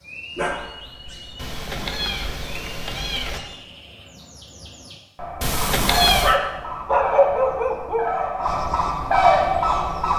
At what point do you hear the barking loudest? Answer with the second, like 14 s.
7 s.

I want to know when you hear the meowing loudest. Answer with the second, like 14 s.
6 s.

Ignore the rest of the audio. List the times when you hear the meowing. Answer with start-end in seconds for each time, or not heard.
1.4-3.4, 5.4-6.3.